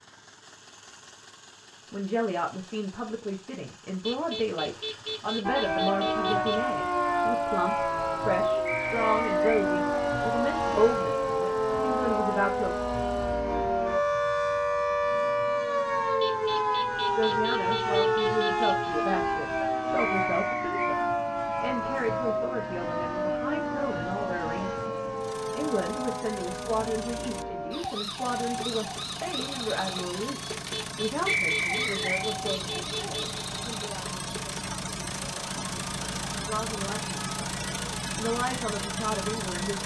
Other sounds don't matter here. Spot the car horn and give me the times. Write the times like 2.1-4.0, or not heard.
4.0-6.6, 16.2-18.9, 30.7-33.4.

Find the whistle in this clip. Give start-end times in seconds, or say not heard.
8.7-9.7, 19.9-20.9, 31.2-32.2.